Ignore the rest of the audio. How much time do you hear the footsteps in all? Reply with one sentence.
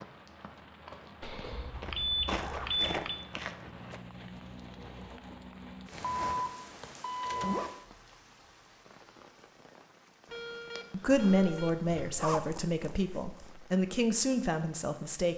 The footsteps can be heard for 4 seconds in total.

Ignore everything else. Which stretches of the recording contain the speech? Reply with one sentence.
You can hear the speech from 10.9 to 15.3 s.